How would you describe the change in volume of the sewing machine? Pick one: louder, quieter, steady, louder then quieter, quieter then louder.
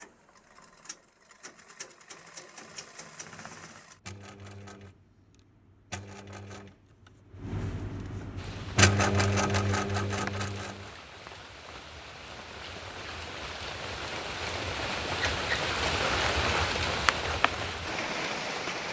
louder.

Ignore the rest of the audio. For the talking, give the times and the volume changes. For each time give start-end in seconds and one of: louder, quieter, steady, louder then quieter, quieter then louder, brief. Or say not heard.
not heard.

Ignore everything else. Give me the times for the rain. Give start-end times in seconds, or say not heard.
8.3-18.8.